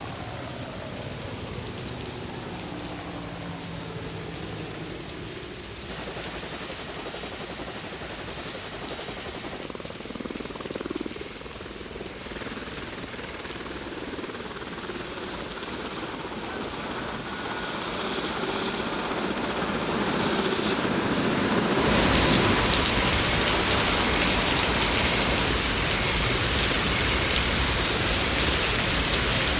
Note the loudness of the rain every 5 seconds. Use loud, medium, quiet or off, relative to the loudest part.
quiet, quiet, quiet, quiet, loud, loud.